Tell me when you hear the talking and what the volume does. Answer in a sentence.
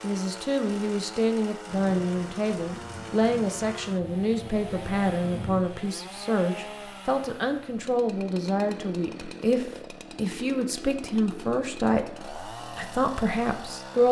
The talking can be heard from 0.0 to 14.0 s, at a steady volume.